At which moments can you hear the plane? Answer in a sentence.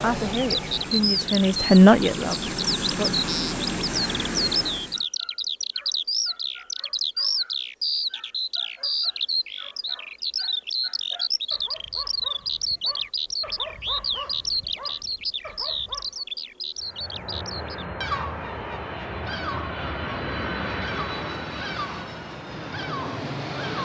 The plane can be heard from 0.0 to 5.0 s and from 16.8 to 23.8 s.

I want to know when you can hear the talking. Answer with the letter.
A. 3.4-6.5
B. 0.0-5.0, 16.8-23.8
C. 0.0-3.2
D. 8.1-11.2
C.